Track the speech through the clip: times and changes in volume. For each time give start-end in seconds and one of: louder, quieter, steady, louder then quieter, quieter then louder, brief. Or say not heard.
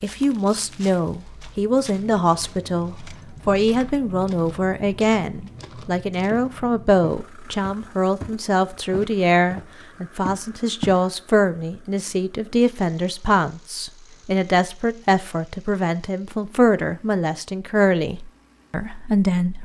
0.0-19.6 steady.